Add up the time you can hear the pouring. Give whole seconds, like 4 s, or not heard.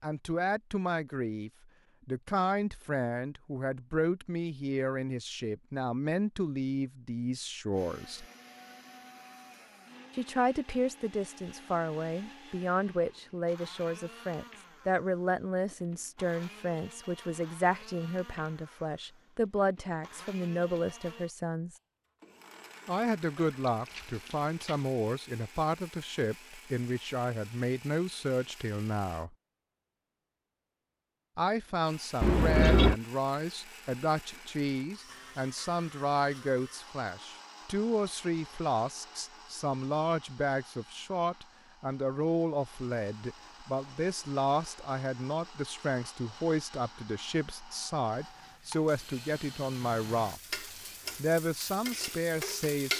2 s.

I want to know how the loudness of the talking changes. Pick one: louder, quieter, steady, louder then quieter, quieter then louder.
steady.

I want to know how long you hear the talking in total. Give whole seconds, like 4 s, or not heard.
48 s.